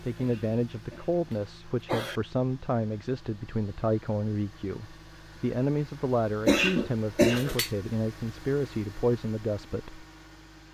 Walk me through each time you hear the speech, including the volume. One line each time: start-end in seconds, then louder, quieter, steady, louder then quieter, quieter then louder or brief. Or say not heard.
0.0-10.1 steady.